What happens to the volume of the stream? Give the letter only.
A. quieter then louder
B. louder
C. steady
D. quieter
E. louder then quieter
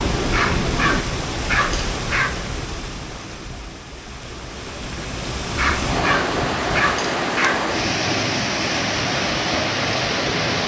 A.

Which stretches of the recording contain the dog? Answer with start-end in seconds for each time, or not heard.
0.3-2.3, 5.5-7.5.